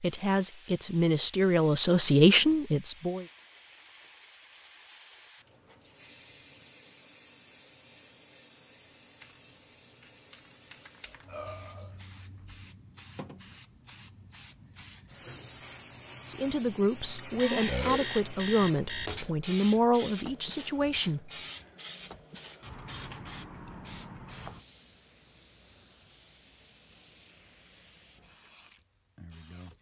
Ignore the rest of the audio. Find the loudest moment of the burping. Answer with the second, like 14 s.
18 s.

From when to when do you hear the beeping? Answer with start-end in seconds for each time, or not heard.
17.2-19.2.